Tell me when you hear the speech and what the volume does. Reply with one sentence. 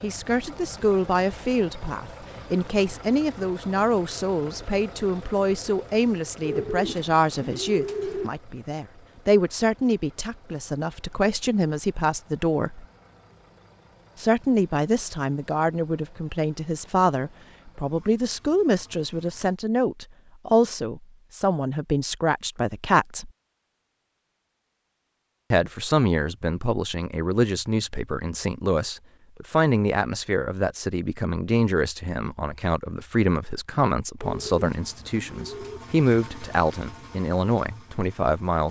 The speech can be heard from 0.0 to 12.8 s, at a steady volume; from 14.2 to 23.3 s, at a steady volume; and from 25.5 to 38.6 s, at a steady volume.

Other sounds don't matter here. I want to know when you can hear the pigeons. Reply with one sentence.
The pigeons can be heard from 6.4 to 8.3 s and from 34.2 to 35.8 s.